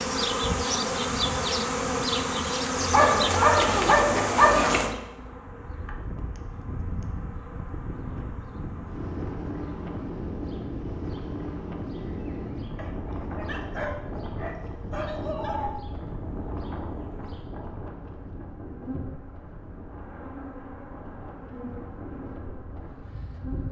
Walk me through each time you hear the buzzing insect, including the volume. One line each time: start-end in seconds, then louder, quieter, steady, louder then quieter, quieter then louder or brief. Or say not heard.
0.0-23.6 quieter then louder.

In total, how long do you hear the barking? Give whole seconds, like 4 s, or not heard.
5 s.